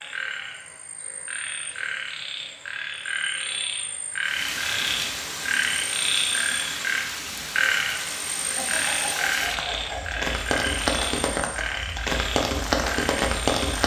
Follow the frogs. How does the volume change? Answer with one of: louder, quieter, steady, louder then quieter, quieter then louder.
louder then quieter.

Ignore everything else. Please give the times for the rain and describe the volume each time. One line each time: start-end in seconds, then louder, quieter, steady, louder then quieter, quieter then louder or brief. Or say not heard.
4.2-13.8 louder.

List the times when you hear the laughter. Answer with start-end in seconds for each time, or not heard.
8.3-10.2.